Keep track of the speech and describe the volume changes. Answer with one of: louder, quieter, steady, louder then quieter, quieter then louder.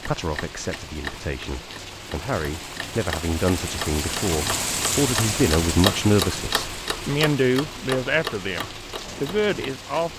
louder.